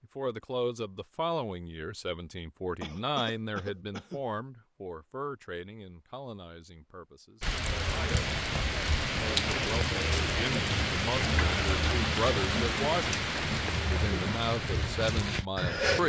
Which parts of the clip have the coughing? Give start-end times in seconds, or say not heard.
2.8-4.2.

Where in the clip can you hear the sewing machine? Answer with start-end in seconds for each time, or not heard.
not heard.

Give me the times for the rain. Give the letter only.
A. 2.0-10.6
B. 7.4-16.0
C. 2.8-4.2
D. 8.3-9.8
B.